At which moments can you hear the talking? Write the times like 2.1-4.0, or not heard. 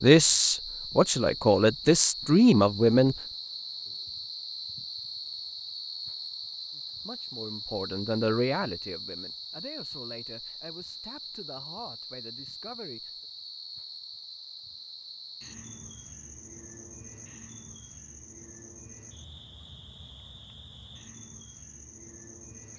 0.0-3.1, 6.7-13.1.